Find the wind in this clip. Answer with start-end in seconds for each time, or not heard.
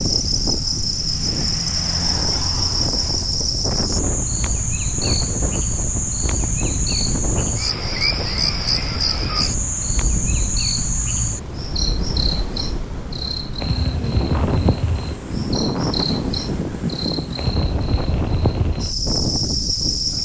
0.0-20.2.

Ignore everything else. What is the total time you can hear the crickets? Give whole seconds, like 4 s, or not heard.
20 s.